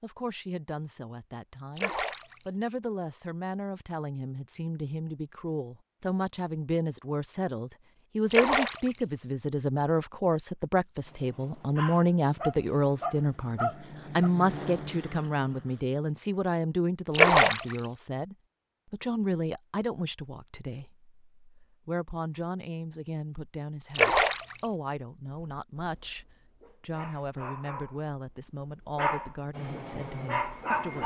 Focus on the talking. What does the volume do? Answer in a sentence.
The volume of the talking goes up, then down.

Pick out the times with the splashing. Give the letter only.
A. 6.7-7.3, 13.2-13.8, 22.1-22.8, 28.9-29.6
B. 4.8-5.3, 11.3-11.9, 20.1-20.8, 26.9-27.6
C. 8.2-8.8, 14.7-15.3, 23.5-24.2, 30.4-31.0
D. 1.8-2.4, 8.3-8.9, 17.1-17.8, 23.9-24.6
D.